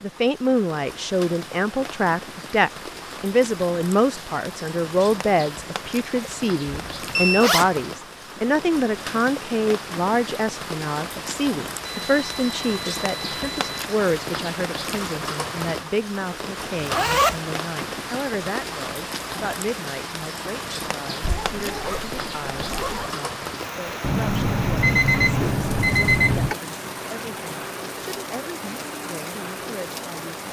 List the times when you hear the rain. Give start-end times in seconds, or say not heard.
0.0-30.4.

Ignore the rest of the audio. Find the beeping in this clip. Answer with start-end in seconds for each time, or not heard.
6.8-7.5, 11.8-13.7, 24.0-26.6.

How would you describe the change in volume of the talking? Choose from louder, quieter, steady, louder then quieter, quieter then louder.
quieter.